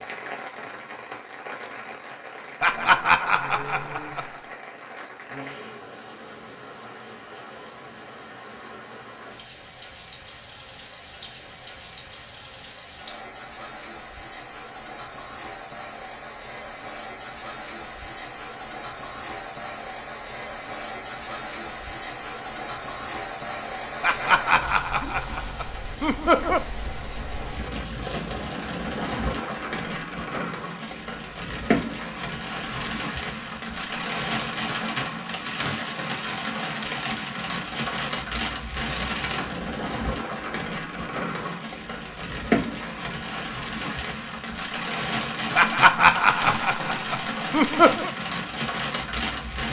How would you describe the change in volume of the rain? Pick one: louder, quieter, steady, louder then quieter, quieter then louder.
louder.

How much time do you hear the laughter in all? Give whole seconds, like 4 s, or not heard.
7 s.